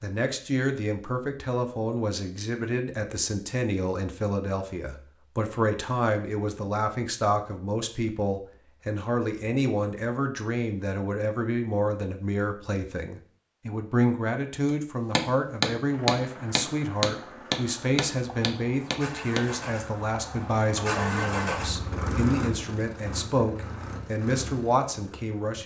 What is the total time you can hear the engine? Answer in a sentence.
You can hear the engine for 10 seconds altogether.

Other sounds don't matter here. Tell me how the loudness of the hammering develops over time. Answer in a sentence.
The volume of the hammering goes down.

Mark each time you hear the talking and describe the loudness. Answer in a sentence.
The talking can be heard from 0.0 to 25.6 s, at a steady volume.